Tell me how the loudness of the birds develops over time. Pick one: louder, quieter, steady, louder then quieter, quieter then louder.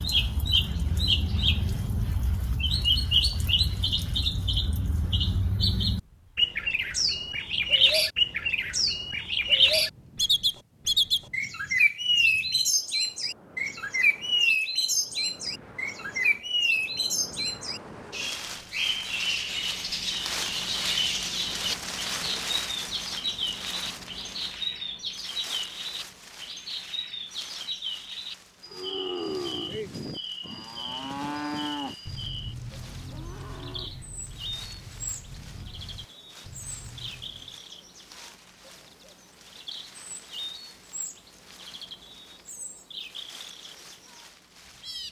quieter.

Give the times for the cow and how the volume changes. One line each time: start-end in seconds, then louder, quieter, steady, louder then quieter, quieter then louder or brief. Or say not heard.
28.6-37.6 quieter.